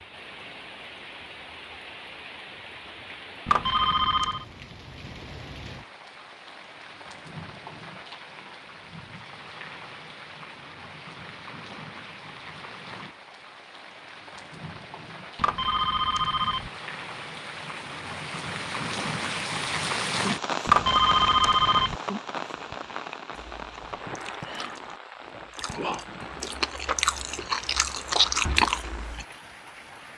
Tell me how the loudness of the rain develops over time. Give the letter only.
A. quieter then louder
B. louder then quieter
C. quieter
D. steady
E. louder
B.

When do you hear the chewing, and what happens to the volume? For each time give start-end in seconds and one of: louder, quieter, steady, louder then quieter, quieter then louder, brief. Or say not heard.
23.6-29.2 louder.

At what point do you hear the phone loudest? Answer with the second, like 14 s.
21 s.